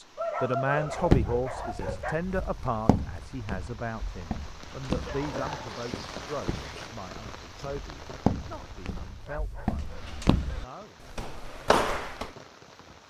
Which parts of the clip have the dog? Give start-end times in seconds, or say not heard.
0.1-2.1, 4.8-6.9, 9.2-10.7.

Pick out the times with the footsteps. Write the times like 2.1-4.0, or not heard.
0.9-12.3.